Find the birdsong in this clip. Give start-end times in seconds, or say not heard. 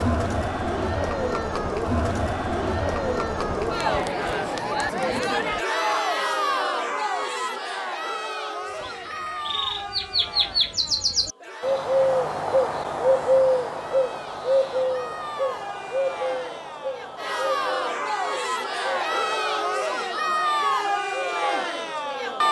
8.8-22.3.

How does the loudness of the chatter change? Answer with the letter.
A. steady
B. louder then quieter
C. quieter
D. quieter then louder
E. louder
D.